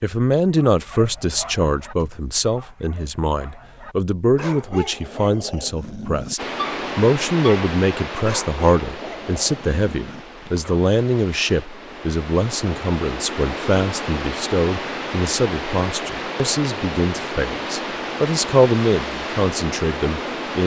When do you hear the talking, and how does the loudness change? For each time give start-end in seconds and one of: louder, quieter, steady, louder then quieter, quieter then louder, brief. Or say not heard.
0.0-20.6 steady.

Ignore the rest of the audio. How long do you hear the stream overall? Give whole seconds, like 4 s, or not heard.
14 s.